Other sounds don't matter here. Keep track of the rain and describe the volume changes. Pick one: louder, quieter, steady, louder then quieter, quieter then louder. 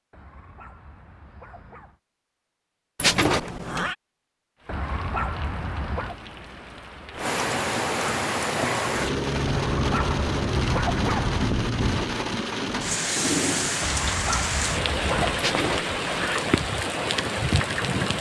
louder.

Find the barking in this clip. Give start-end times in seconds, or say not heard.
0.1-2.0, 4.7-6.2, 9.4-11.5, 13.8-15.5.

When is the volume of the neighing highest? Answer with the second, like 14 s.
3 s.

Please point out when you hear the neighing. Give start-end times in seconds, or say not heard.
3.0-4.0, 15.3-16.4.